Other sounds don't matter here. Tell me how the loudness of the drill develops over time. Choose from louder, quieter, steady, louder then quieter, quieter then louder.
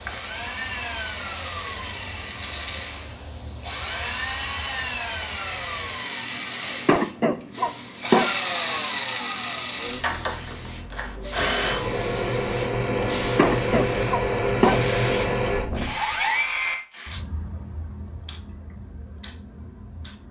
louder.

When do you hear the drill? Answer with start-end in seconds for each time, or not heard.
0.0-16.8.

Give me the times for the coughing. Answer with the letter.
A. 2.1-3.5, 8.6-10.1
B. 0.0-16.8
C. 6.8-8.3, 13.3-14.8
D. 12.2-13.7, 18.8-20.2
C.